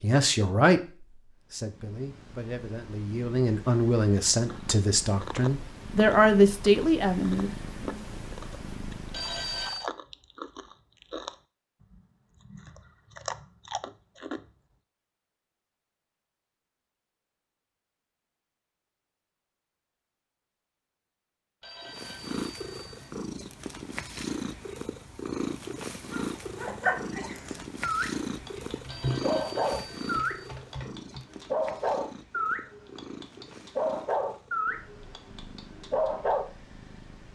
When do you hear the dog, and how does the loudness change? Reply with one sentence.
The dog can be heard from 26.0 to 36.5 s, at a steady volume.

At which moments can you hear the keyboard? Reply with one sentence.
You can hear the keyboard from 28.4 to 31.2 s.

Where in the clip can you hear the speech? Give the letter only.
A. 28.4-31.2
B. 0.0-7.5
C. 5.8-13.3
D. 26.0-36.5
B.